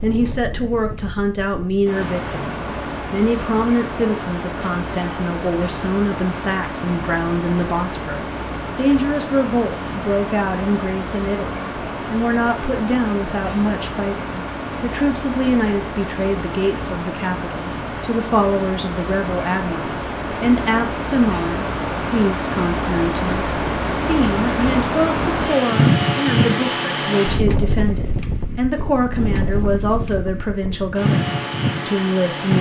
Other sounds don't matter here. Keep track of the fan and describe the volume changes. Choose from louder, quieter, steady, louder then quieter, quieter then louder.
louder.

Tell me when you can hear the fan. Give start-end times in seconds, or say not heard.
0.0-32.5.